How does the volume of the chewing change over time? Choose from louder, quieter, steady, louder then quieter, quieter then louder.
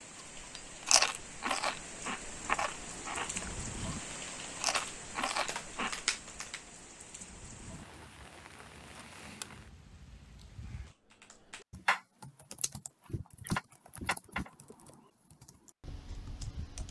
quieter then louder.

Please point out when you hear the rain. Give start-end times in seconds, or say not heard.
0.0-10.9.